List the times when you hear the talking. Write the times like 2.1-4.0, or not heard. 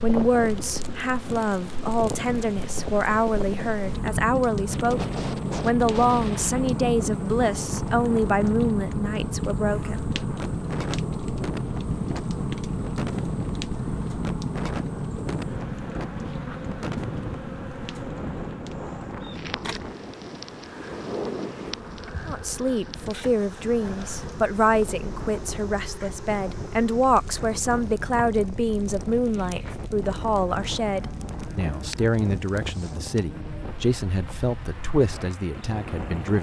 0.0-10.1, 22.2-36.3.